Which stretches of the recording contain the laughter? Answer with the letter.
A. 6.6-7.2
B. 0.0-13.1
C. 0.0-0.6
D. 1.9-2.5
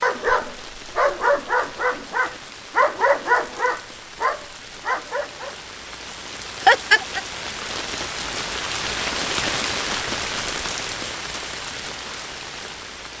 A.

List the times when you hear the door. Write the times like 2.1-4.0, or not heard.
not heard.